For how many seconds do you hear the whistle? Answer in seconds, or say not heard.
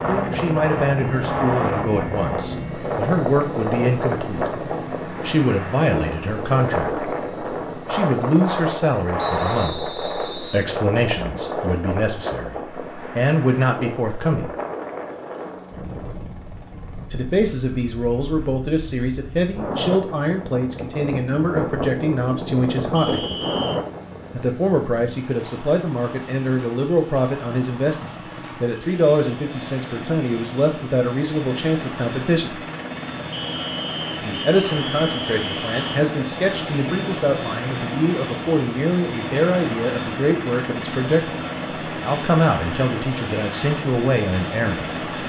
5 s.